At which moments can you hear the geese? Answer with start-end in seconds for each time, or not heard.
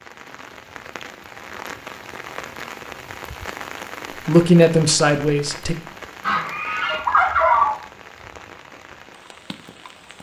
6.2-7.8.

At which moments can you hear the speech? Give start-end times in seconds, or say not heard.
4.2-5.8.